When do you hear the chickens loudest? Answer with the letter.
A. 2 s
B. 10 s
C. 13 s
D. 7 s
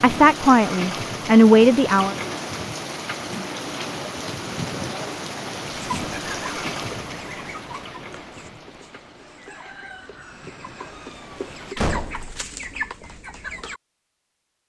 C.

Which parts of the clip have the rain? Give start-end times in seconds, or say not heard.
0.0-11.8.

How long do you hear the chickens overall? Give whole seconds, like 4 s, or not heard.
8 s.